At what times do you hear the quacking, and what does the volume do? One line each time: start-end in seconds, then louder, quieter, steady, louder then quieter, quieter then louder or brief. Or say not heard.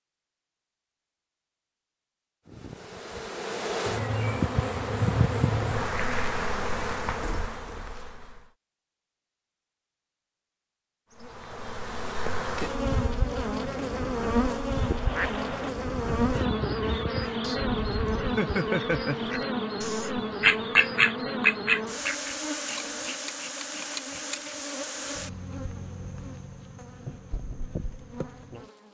14.7-22.4 louder.